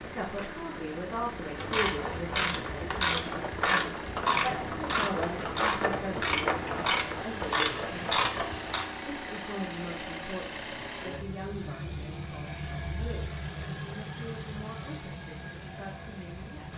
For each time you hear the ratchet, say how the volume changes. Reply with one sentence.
The ratchet can be heard from 1.6 to 8.8 s, at a steady volume.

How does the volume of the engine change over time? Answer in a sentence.
The loudness of the engine stays about the same.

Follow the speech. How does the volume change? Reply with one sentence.
The volume of the speech goes down.